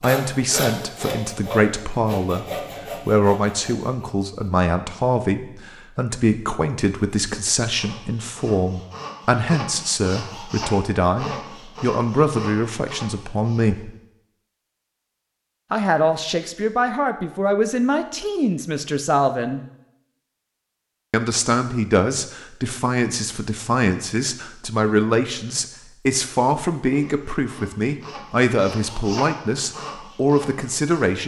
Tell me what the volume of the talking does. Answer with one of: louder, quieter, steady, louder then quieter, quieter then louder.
steady.